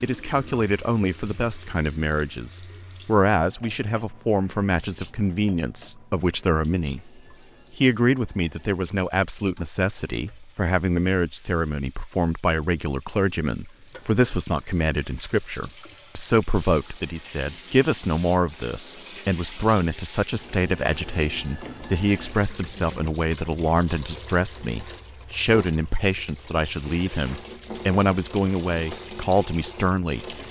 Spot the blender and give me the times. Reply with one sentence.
The blender can't be heard in this clip.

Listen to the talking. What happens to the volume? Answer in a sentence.
The volume of the talking stays about the same.